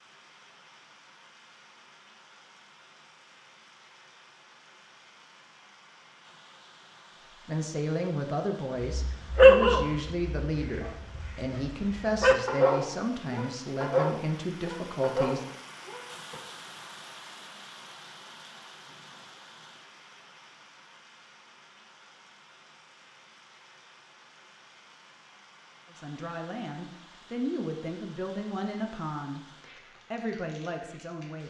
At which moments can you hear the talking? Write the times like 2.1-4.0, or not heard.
7.5-15.4, 25.9-31.4.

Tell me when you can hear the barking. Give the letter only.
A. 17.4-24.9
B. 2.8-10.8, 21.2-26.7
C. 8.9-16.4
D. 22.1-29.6
C.